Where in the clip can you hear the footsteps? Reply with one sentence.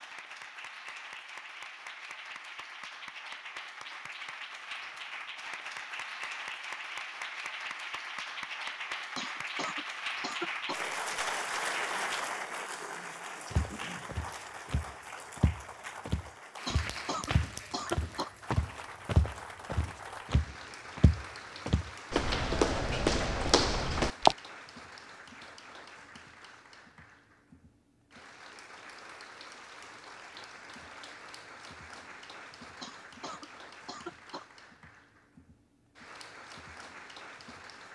You can hear the footsteps from 13.5 to 24.4 s.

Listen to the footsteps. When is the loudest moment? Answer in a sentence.
The volume of the footsteps peaks at 24 seconds.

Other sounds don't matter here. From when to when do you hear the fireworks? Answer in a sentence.
The fireworks can't be heard in this clip.